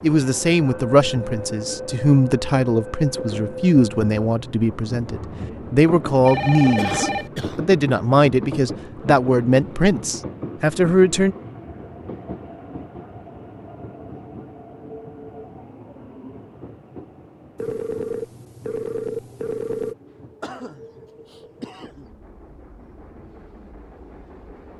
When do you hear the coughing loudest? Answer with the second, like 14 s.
7 s.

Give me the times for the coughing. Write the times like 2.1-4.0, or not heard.
6.8-7.7, 20.4-22.1.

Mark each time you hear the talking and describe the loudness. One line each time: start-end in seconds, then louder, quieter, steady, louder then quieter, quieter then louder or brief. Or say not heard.
0.0-11.3 steady.